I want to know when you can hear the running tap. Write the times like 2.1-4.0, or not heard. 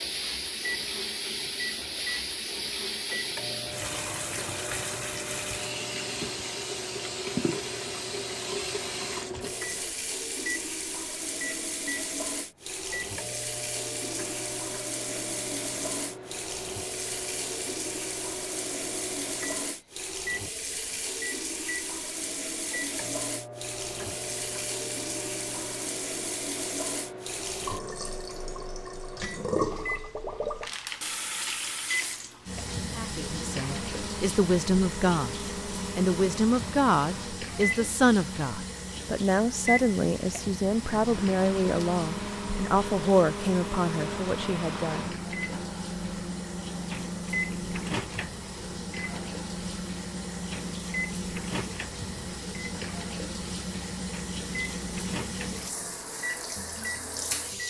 0.0-57.6.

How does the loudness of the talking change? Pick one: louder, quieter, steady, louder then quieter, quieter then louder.
steady.